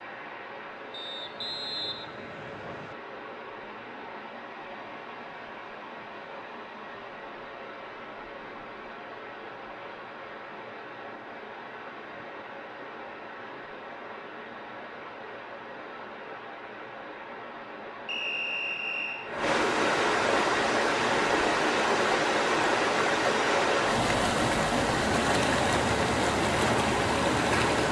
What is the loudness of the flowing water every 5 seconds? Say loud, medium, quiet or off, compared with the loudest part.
quiet, quiet, quiet, medium, loud, loud.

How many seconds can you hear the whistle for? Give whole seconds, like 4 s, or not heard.
3 s.